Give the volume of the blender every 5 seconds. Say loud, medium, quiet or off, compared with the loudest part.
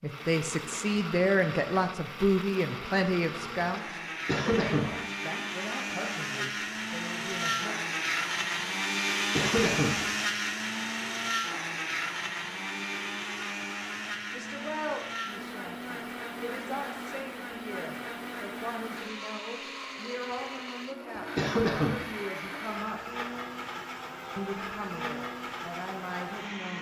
medium, loud, loud, medium, medium, medium.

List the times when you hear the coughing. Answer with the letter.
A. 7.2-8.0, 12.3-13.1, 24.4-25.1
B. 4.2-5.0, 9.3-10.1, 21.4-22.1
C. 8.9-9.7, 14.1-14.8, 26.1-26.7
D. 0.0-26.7
B.